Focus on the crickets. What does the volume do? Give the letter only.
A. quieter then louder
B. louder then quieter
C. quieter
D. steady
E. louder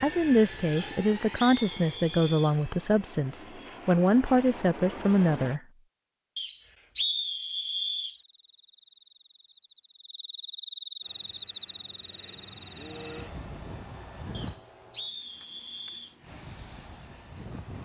B.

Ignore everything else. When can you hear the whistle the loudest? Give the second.
7 s.